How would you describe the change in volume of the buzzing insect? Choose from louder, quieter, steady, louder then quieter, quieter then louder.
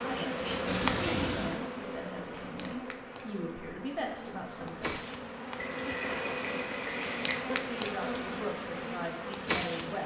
quieter then louder.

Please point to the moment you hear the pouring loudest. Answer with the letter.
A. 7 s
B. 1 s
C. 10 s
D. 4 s
B.